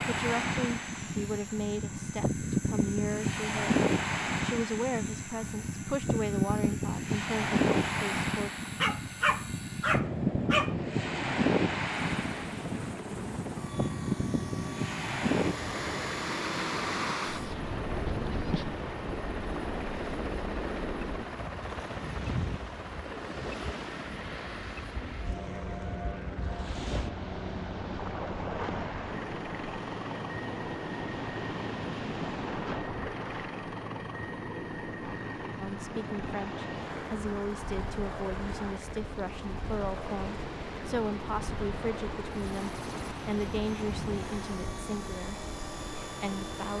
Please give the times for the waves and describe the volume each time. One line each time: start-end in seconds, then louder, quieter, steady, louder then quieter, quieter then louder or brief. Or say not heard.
0.0-46.7 quieter.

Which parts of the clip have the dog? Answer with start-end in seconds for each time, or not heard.
8.8-10.8.